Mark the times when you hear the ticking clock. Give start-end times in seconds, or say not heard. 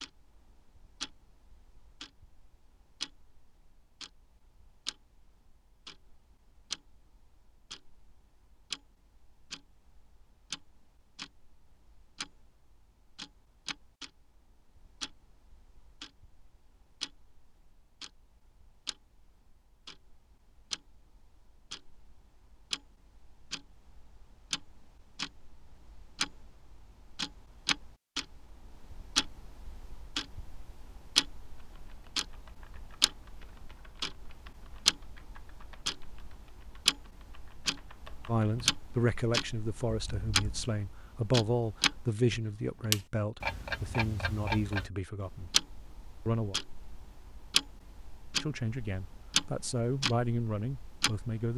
0.0-51.5.